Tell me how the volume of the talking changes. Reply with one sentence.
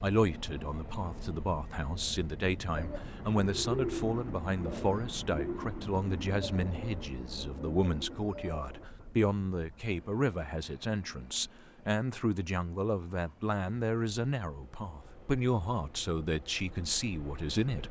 The volume of the talking stays about the same.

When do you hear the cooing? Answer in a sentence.
The cooing can be heard from 2.6 to 8.9 s.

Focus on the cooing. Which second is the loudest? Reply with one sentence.
The volume of the cooing peaks at 4 seconds.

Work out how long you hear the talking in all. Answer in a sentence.
The talking can be heard for 18 seconds in total.